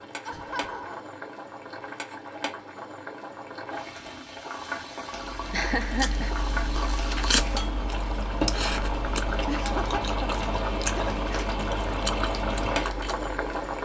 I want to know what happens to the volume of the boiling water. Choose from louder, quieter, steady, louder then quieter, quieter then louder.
louder.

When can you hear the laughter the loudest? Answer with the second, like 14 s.
6 s.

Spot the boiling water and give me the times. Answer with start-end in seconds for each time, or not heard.
0.0-13.8.